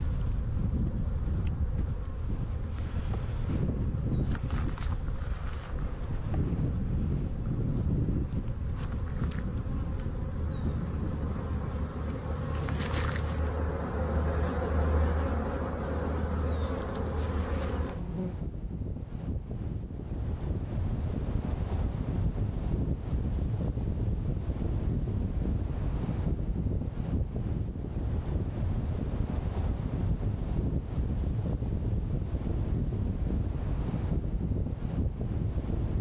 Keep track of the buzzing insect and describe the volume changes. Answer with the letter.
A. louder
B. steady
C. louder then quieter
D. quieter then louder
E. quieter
A.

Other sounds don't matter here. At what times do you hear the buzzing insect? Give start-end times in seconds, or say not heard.
0.0-18.4.